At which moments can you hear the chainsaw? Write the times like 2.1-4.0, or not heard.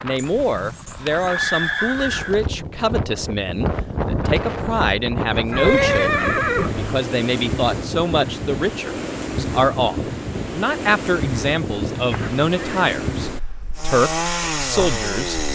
13.8-15.5.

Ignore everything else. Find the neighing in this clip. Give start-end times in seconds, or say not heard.
0.1-2.4, 5.5-7.0, 12.1-12.9.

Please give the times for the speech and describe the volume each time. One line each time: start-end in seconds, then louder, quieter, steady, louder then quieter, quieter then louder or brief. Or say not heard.
0.0-15.4 steady.